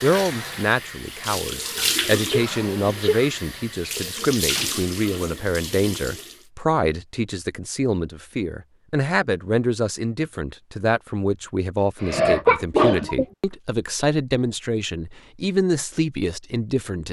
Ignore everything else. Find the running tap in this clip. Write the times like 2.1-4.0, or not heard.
0.0-6.5.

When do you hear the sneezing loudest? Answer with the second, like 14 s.
12 s.